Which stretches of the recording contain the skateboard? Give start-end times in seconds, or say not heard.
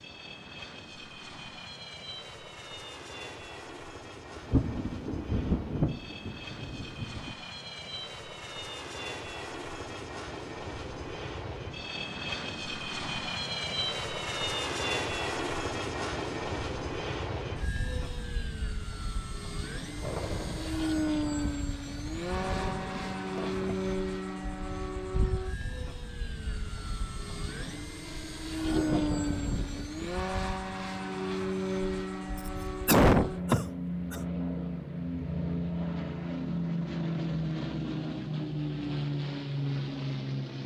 not heard.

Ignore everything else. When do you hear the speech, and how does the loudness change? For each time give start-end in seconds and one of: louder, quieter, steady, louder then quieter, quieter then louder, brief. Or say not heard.
not heard.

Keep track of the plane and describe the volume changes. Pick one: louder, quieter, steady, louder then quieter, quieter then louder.
louder.